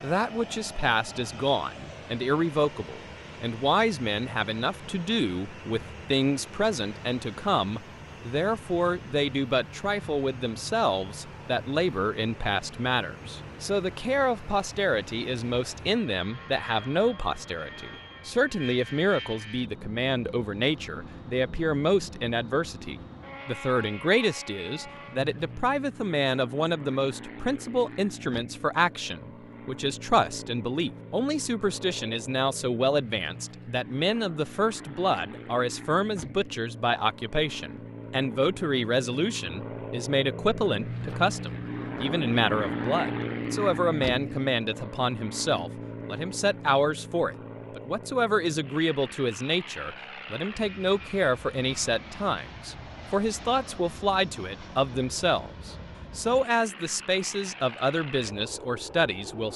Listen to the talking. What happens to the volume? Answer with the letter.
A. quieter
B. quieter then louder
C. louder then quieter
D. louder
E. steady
E.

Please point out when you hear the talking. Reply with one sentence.
You can hear the talking from 0.0 to 59.5 s.